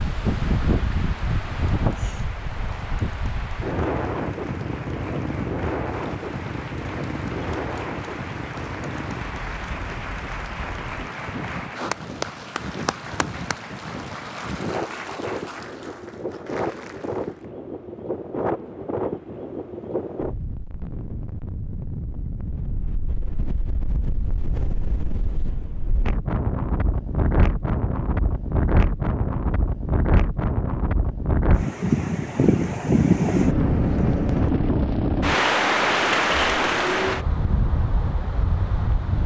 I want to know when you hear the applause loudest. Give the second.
12 s.